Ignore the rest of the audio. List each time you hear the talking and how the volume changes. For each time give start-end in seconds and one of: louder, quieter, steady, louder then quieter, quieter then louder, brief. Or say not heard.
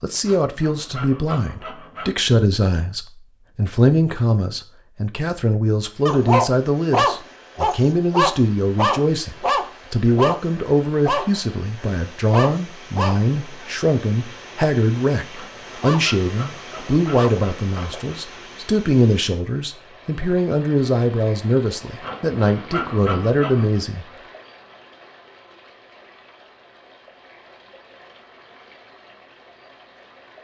0.0-24.1 steady.